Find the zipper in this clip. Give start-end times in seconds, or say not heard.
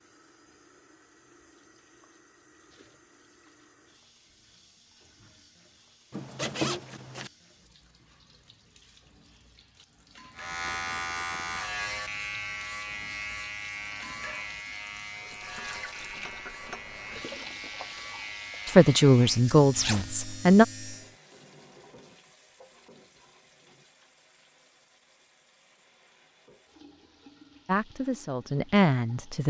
6.1-7.3, 19.7-20.1.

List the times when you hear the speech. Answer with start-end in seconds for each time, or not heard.
18.6-20.6, 27.6-29.4.